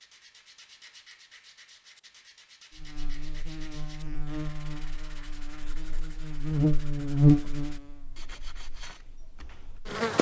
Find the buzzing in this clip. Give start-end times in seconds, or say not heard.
2.8-10.1.